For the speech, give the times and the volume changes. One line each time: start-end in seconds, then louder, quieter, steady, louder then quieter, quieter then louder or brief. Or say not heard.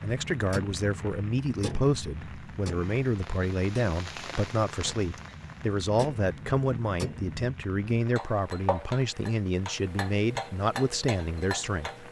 0.0-12.0 steady.